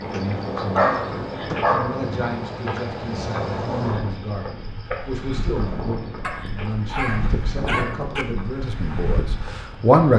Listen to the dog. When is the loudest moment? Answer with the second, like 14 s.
1 s.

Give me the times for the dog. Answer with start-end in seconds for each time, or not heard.
0.1-1.9, 6.2-8.2.